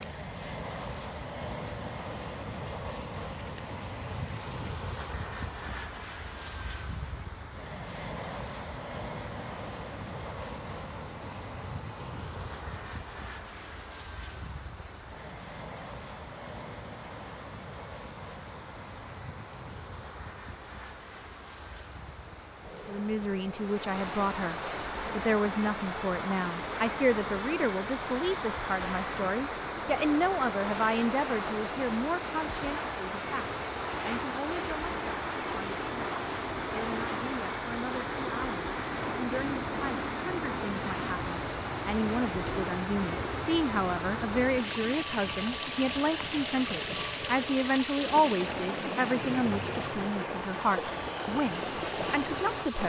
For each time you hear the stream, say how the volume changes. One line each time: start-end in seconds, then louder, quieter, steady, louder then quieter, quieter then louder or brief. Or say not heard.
0.0-52.8 louder.